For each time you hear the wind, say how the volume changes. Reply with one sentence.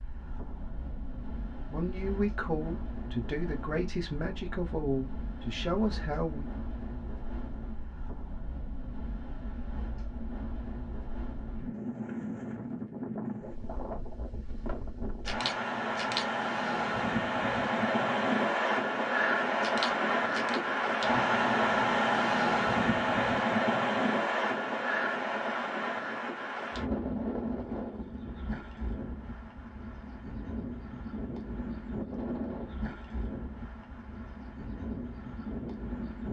The wind can be heard from 0.0 to 36.2 s, getting louder then quieter.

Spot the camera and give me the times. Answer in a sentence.
You can hear the camera from 15.2 to 16.2 s and from 19.6 to 20.6 s.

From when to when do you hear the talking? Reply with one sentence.
You can hear the talking from 1.5 to 6.5 s.